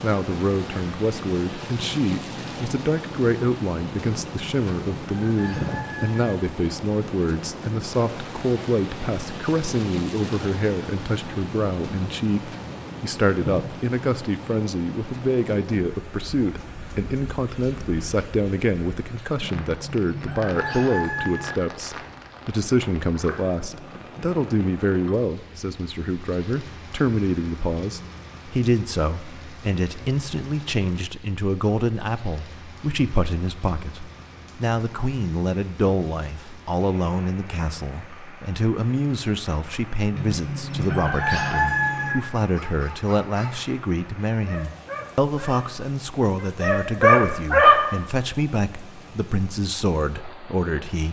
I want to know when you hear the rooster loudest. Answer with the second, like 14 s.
42 s.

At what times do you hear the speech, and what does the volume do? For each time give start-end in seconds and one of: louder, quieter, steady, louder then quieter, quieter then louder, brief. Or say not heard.
0.0-51.0 steady.